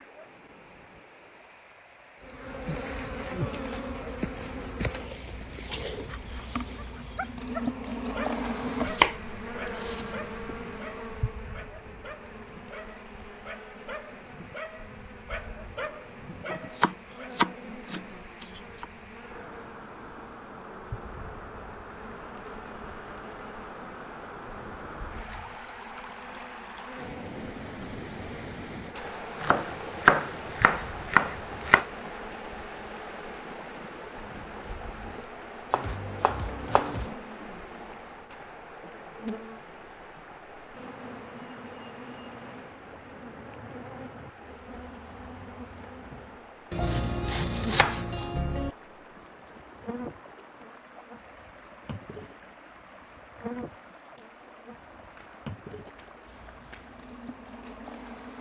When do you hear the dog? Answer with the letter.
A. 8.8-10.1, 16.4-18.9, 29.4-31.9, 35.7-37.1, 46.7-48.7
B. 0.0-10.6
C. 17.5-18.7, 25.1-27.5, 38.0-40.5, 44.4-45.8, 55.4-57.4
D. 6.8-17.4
D.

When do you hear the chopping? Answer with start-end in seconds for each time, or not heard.
8.8-10.1, 16.4-18.9, 29.4-31.9, 35.7-37.1, 46.7-48.7.